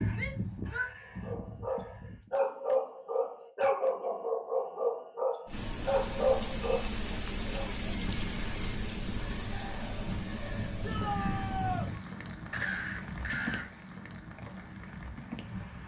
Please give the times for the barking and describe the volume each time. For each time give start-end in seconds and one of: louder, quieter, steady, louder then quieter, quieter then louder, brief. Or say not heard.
1.0-7.7 steady.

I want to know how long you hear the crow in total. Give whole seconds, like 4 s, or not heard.
8 s.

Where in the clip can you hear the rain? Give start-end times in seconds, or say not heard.
5.5-15.8.